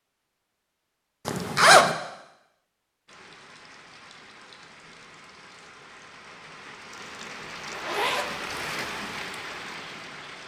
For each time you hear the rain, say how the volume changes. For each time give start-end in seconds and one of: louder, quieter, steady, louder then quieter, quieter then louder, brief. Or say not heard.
3.0-10.4 louder.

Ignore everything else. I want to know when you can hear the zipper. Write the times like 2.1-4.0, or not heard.
1.2-1.9, 7.7-8.3.